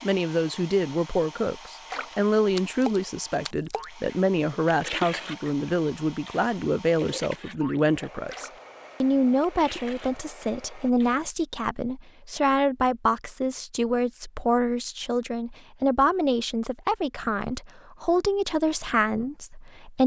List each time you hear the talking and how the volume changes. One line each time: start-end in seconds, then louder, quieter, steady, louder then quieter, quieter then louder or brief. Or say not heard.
0.0-20.0 steady.